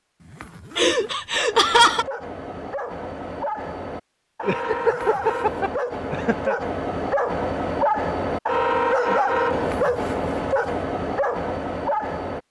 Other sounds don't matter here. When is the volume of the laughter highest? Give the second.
2 s.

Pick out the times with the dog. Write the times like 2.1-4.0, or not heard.
1.3-12.4.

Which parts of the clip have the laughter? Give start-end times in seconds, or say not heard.
0.8-2.0, 4.5-6.5, 8.9-9.3.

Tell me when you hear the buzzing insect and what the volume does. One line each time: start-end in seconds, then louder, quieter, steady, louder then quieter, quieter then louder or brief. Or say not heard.
not heard.